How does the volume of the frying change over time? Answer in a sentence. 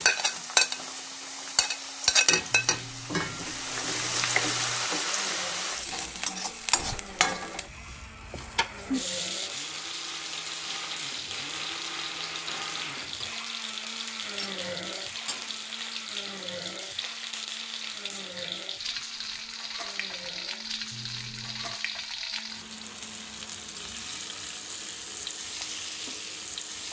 The loudness of the frying goes down.